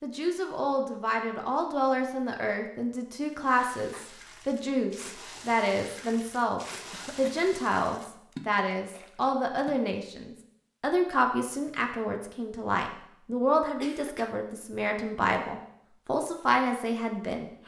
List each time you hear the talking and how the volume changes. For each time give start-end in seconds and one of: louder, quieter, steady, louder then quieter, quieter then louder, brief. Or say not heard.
0.0-17.6 steady.